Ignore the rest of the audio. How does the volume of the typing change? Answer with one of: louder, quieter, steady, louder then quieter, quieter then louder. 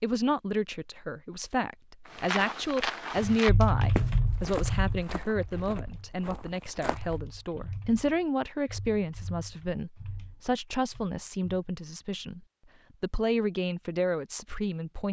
quieter.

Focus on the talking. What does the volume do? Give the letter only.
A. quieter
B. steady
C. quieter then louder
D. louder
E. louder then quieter
B.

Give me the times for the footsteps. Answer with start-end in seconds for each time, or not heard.
2.0-7.2.